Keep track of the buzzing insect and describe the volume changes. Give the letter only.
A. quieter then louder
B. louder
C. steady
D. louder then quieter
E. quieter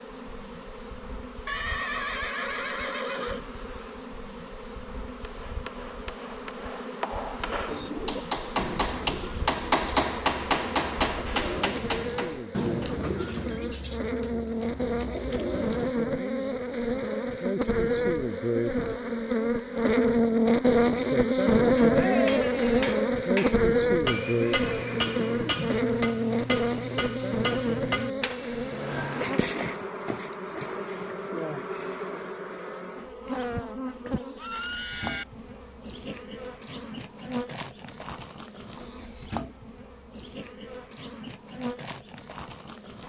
D.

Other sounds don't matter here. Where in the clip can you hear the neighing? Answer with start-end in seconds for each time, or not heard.
1.4-3.5, 24.1-25.8, 34.4-35.2.